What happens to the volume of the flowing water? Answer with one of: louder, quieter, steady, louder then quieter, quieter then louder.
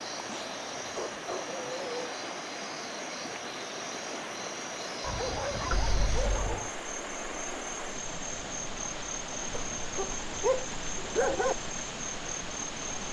steady.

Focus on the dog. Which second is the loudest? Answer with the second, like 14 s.
11 s.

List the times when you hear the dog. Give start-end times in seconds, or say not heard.
0.3-2.1, 5.0-6.8, 9.5-11.6.